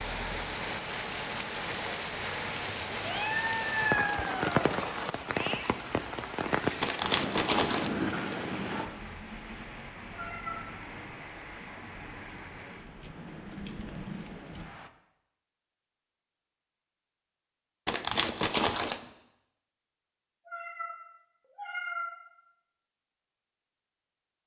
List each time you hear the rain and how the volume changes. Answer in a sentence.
You can hear the rain from 0.0 to 14.9 s, getting quieter.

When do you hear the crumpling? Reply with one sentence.
The crumpling can be heard from 6.8 to 7.9 s and from 17.9 to 19.0 s.